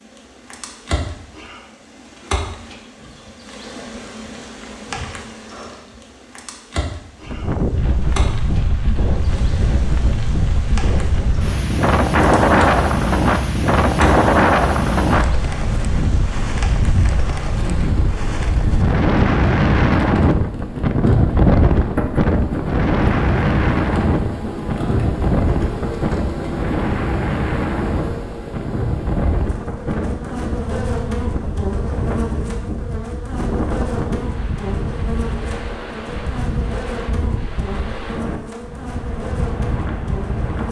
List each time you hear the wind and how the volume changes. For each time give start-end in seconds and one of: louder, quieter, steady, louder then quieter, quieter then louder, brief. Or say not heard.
7.2-40.6 quieter.